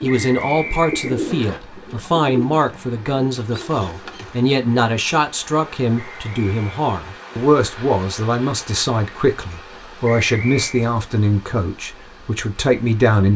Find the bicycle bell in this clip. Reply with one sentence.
The bicycle bell can't be heard in this clip.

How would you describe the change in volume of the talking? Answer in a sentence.
The loudness of the talking stays about the same.